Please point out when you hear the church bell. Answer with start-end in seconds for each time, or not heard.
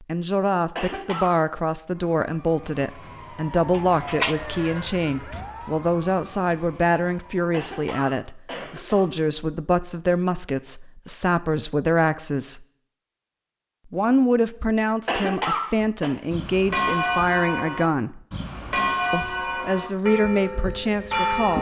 15.8-21.5.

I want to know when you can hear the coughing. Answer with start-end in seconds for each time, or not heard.
0.8-1.3, 7.5-9.1, 15.1-16.1.